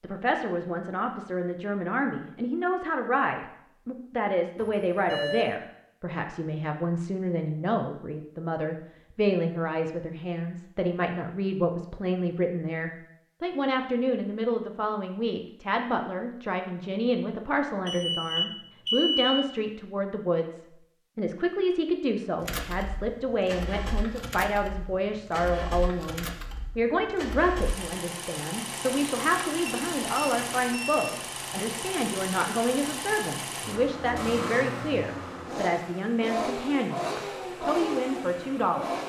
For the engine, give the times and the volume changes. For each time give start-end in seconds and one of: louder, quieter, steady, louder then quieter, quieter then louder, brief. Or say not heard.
22.4-39.0 louder.